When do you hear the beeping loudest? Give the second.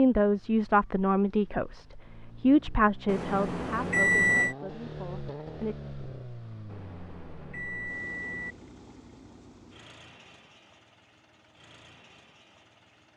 4 s.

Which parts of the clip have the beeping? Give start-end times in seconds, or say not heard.
3.0-4.5, 6.7-8.6.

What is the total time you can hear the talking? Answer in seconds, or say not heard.
6 s.